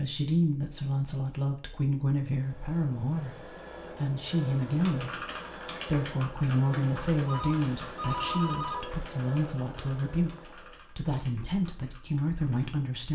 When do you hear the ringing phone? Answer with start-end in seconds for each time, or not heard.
7.2-8.8.